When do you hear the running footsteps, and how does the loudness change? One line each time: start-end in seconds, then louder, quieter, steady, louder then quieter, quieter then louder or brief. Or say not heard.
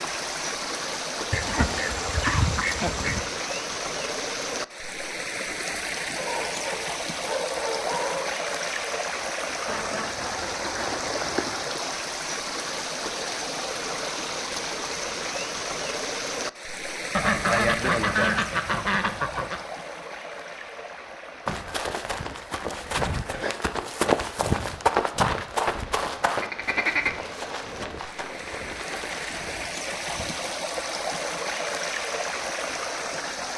21.4-30.3 louder then quieter.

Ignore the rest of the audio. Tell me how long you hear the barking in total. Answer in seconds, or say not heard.
2 s.